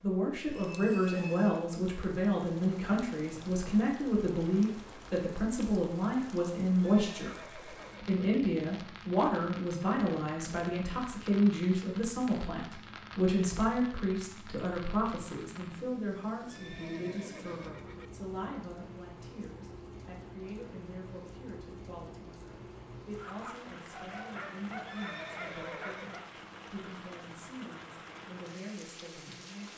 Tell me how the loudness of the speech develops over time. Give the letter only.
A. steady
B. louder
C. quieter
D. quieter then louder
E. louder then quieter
C.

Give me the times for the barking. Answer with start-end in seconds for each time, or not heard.
23.1-26.4.